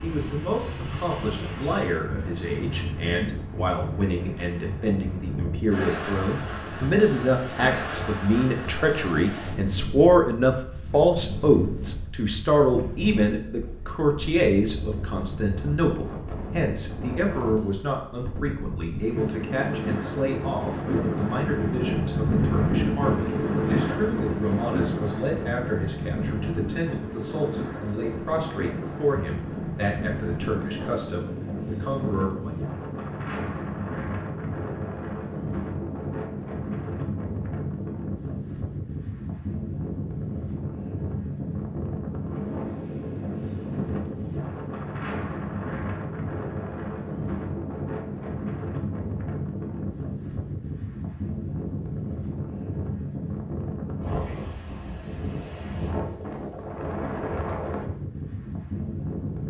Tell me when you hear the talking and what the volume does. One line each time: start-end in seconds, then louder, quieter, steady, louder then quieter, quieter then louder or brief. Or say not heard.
0.0-32.5 louder then quieter.